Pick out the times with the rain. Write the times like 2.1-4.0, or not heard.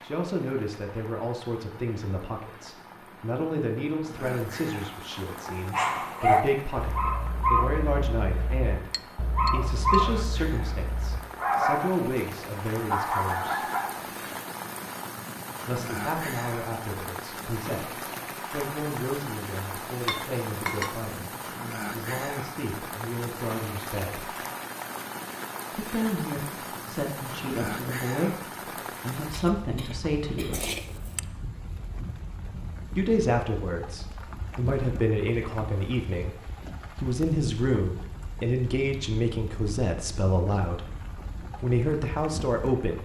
0.0-43.0.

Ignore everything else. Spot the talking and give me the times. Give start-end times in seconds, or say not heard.
0.0-13.7, 15.7-24.3, 25.7-30.6, 33.0-43.0.